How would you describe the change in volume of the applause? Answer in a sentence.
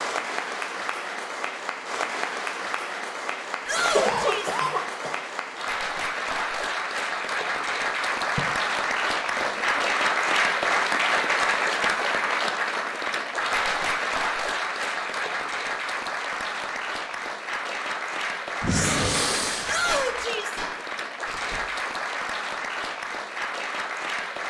The loudness of the applause goes up, then down.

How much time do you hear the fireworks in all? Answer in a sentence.
The fireworks can be heard for 2 seconds in total.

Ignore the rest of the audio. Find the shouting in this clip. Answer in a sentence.
The shouting can be heard from 3.6 to 4.6 s and from 19.6 to 20.6 s.